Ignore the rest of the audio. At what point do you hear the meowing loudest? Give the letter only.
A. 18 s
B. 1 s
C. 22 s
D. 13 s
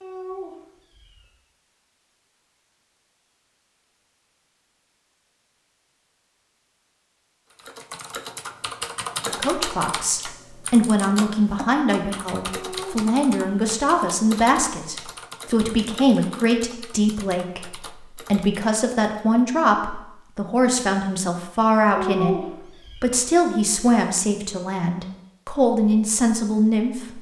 C.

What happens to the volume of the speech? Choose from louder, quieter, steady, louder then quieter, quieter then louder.
steady.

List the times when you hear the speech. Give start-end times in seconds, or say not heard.
9.2-27.1.